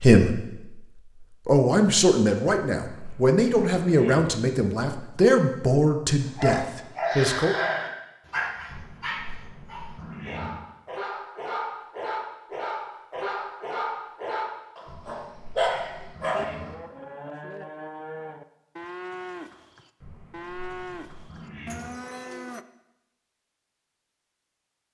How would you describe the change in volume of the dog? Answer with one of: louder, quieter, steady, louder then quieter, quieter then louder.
quieter then louder.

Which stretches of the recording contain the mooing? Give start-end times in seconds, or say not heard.
16.3-22.6.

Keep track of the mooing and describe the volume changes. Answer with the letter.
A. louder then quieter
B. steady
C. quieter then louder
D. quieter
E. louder
B.